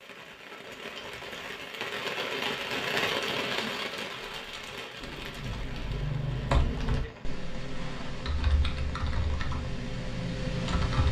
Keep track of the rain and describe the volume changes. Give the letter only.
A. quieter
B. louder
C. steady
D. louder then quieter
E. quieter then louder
D.